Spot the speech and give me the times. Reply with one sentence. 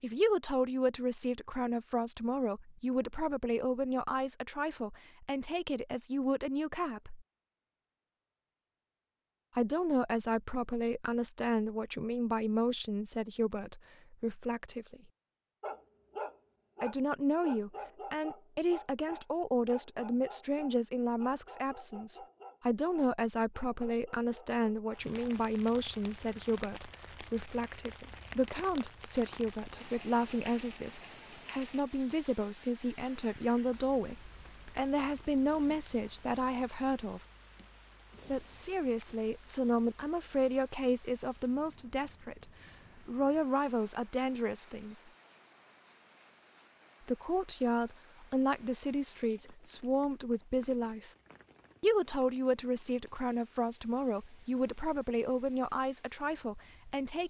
The speech can be heard from 0.0 to 7.2 s, from 9.6 to 15.0 s, from 16.8 to 37.2 s, from 38.2 to 45.0 s, from 47.0 to 51.1 s and from 51.8 to 57.2 s.